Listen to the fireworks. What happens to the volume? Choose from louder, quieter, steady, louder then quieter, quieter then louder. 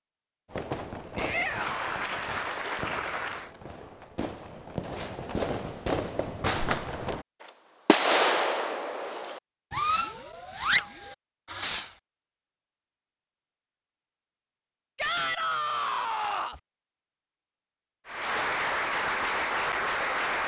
louder.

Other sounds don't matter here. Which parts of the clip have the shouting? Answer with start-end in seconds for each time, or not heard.
1.1-1.9, 14.9-16.6.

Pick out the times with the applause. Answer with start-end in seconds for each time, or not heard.
1.4-3.5, 18.1-20.4.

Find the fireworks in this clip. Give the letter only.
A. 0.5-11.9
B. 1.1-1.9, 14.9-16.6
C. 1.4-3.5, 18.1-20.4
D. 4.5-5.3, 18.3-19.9
A.